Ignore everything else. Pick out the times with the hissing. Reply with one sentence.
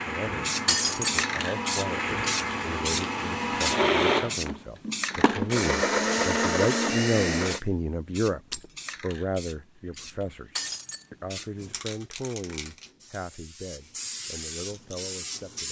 You can hear the hissing from 0.0 to 15.6 s.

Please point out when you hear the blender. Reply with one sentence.
You can hear the blender from 0.0 to 7.6 s.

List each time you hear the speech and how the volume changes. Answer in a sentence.
The speech can be heard from 0.0 to 15.6 s, getting louder then quieter.